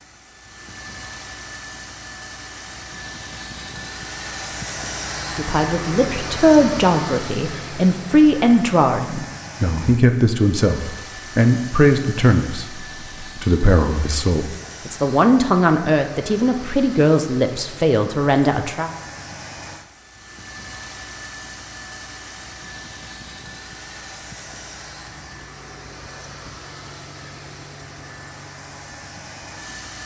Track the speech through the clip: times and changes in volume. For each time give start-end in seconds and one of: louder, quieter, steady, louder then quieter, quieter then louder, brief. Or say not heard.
5.3-18.9 steady.